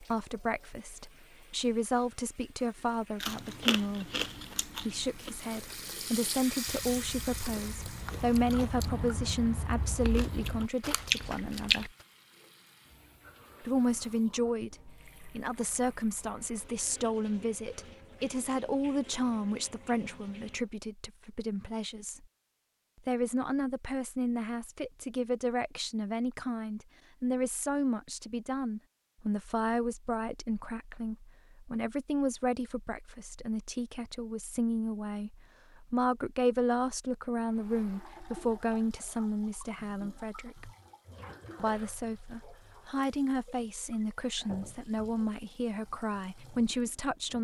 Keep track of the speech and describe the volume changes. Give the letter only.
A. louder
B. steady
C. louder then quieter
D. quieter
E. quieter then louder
B.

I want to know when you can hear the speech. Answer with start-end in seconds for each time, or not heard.
0.0-11.9, 13.6-22.2, 23.1-40.7, 41.5-47.3.